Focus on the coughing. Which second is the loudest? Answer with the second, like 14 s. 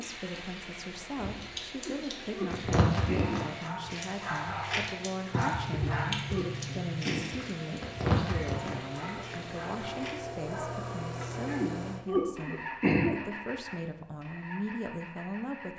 13 s.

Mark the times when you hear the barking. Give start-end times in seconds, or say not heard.
2.5-11.7.